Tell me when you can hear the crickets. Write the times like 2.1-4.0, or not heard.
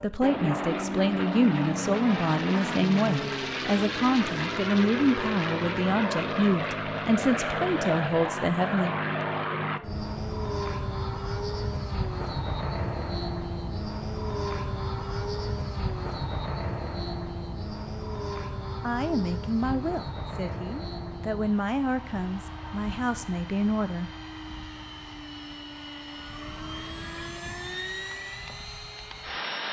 not heard.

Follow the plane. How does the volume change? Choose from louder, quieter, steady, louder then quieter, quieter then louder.
quieter.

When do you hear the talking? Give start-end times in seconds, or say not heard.
0.0-8.9, 18.8-24.1.